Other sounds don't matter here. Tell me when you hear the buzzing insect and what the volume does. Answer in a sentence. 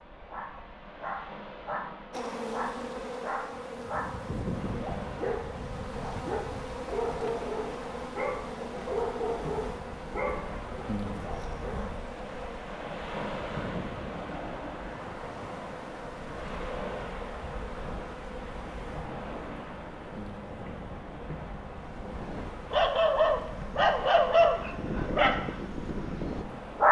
You can hear the buzzing insect from 2.1 to 26.8 s, getting quieter.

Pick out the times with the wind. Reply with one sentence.
The wind can be heard from 0.0 to 26.8 s.